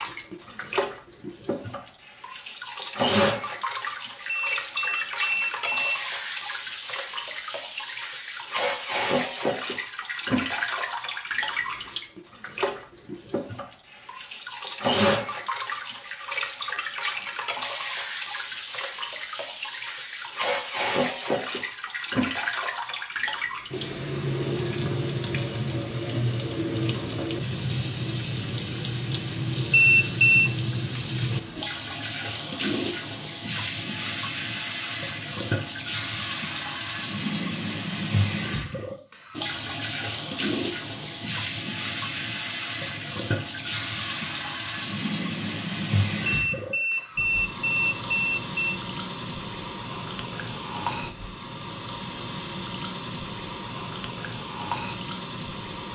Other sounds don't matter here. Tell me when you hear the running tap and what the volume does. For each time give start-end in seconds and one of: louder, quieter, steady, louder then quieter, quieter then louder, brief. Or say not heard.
0.0-55.9 steady.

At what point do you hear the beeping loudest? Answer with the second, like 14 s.
30 s.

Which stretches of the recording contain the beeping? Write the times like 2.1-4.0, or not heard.
4.2-6.0, 29.7-30.5, 46.2-48.8.